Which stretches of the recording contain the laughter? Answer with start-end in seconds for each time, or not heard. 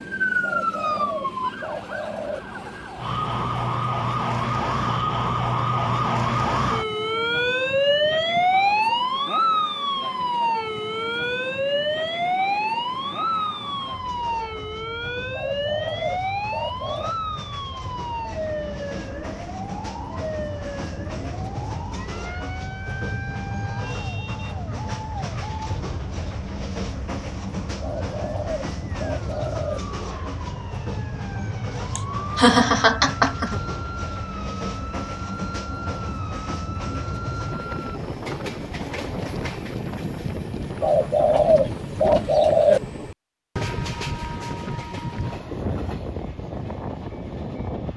31.9-33.6.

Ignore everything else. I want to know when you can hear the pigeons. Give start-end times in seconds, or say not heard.
0.4-2.4, 15.3-17.1, 27.8-29.8, 40.8-42.8.